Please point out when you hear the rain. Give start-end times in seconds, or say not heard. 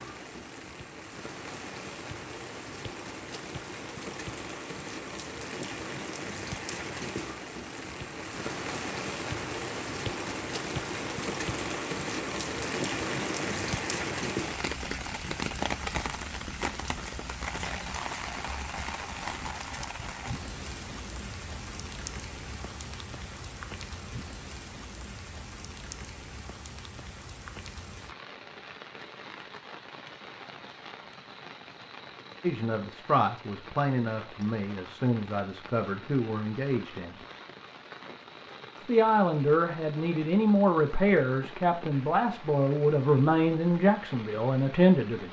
0.0-45.2.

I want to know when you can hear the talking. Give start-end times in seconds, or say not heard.
32.4-37.1, 38.9-45.2.